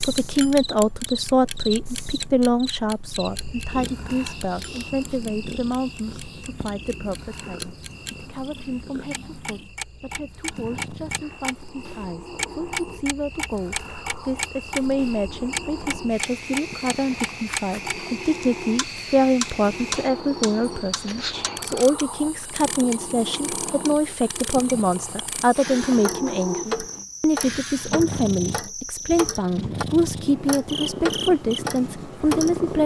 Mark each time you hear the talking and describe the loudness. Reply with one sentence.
The talking can be heard from 0.0 to 32.8 s, getting quieter then louder.